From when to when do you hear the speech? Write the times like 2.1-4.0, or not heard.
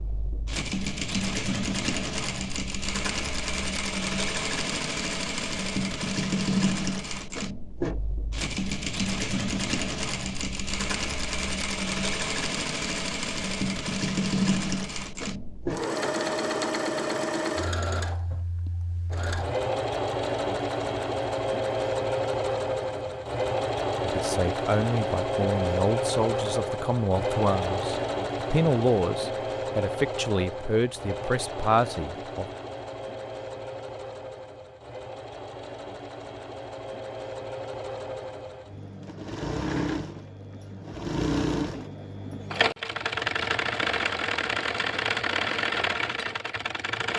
24.0-32.5.